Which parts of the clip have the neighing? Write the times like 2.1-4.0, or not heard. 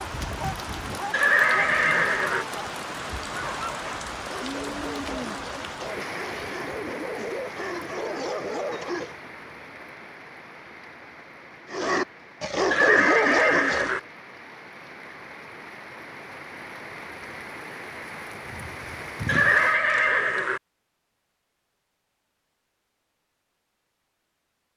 1.1-2.5, 12.7-14.0, 19.2-20.6.